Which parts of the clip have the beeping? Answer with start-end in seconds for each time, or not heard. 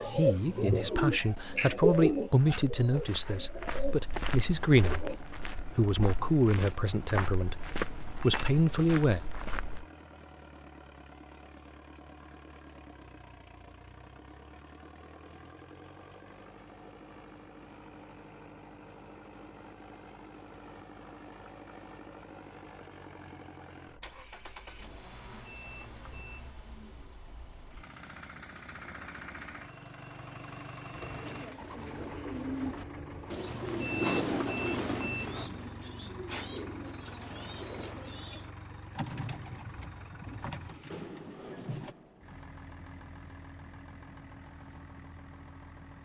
7.9-8.4, 25.1-26.6, 33.5-35.5.